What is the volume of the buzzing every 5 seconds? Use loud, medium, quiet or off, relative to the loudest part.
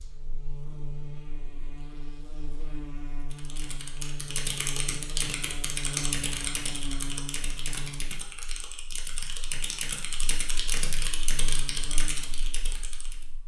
loud, loud, medium.